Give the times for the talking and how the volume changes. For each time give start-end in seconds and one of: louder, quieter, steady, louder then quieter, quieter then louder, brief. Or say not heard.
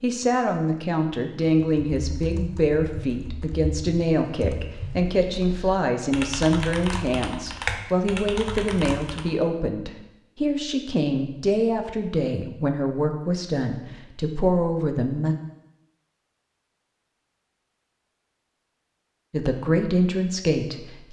0.0-15.3 steady
19.3-21.0 brief.